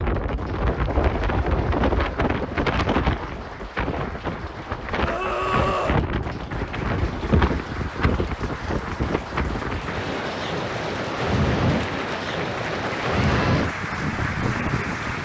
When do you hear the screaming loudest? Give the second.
6 s.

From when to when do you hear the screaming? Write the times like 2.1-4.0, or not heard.
5.0-6.0, 13.1-13.7.